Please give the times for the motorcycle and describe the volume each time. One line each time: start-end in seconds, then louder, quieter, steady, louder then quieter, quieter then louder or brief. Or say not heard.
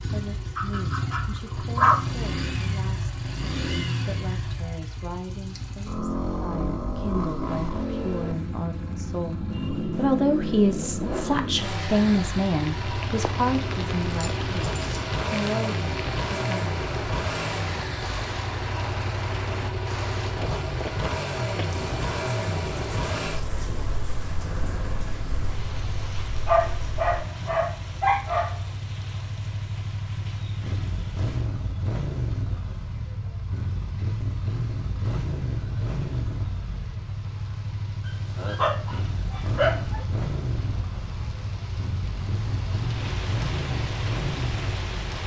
0.0-45.2 steady.